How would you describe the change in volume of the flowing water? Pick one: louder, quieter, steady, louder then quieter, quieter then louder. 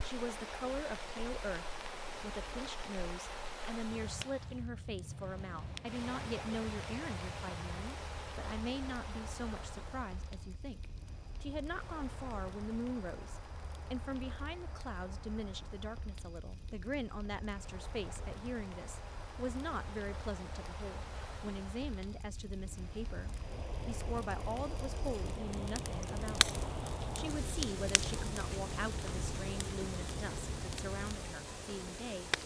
quieter then louder.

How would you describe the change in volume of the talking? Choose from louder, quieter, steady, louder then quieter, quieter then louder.
steady.